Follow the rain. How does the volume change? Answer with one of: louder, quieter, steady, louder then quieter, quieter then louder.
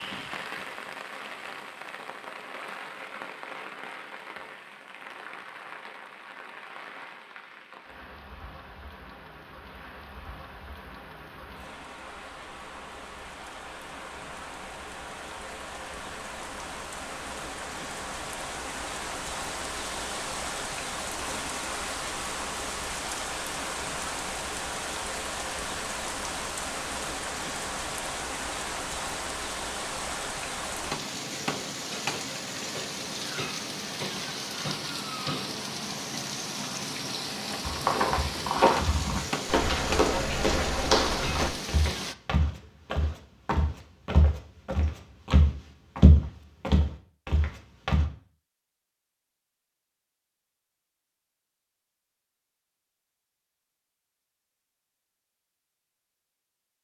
louder.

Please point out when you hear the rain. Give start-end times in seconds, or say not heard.
0.0-42.1.